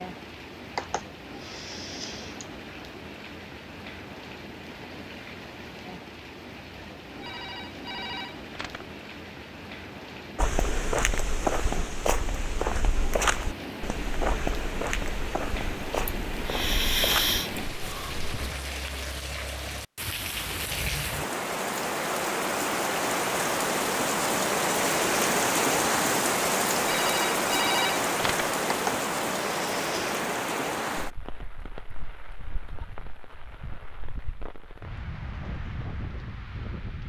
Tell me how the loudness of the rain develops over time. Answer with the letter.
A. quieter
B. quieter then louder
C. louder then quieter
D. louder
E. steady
C.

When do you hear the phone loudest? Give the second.
28 s.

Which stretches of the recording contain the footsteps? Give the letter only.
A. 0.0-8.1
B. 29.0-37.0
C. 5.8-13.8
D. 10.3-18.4
D.